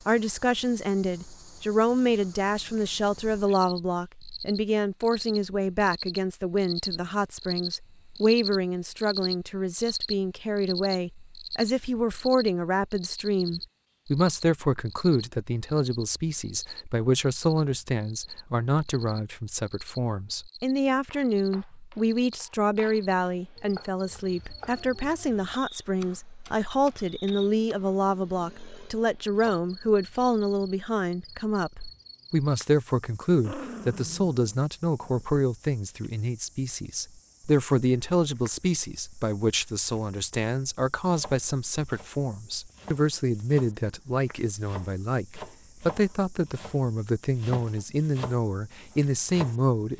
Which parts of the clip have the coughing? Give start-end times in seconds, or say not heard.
not heard.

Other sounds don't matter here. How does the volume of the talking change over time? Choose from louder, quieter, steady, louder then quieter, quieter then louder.
steady.